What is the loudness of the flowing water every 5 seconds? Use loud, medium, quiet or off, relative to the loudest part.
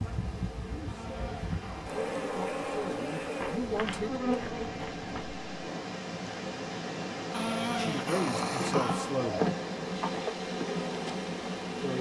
medium, loud, medium.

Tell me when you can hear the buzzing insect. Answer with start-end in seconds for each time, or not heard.
0.0-11.9.